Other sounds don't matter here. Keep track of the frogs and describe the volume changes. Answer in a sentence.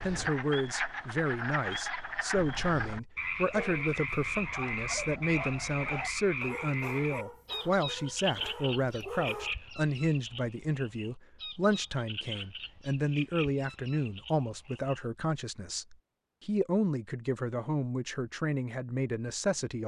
The volume of the frogs goes down.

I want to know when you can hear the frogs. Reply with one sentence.
The frogs can be heard from 0.0 to 15.1 s.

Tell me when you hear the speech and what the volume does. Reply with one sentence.
You can hear the speech from 0.0 to 19.8 s, at a steady volume.